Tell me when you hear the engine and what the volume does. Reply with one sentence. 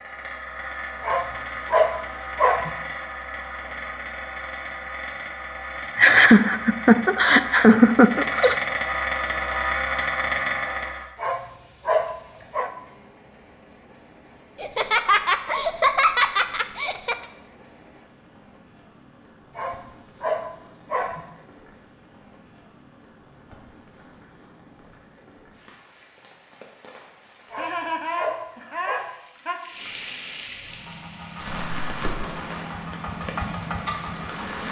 The engine can be heard from 0.0 to 11.1 s, getting louder; and from 30.4 to 34.6 s, getting louder.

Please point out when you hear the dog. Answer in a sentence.
You can hear the dog from 1.0 to 2.8 s, from 11.2 to 12.7 s, from 19.6 to 21.2 s and from 27.5 to 29.1 s.